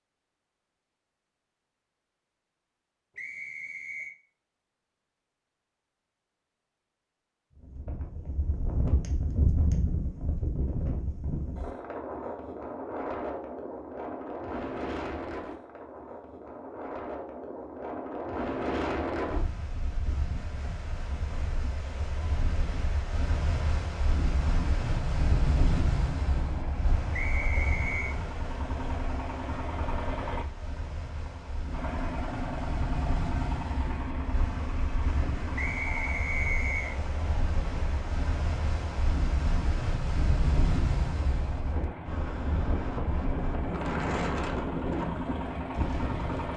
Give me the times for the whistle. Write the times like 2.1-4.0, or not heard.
3.1-4.2, 27.1-28.1, 35.5-37.0.